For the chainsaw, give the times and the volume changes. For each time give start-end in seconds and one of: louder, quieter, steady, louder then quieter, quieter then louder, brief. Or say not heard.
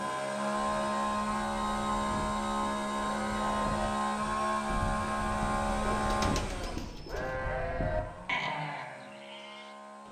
0.0-10.0 quieter.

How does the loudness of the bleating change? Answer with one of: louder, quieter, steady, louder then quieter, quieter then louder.
louder.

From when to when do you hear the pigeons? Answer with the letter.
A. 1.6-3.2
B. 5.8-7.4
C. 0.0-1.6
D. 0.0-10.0
B.